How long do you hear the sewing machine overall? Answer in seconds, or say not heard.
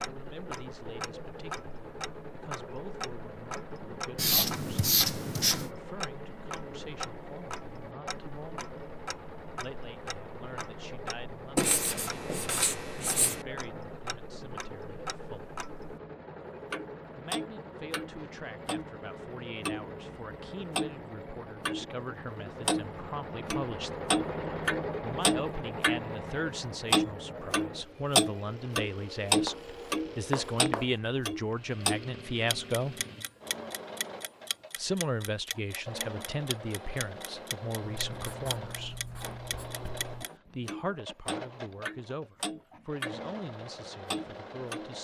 45 s.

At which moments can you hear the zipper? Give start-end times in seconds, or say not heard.
not heard.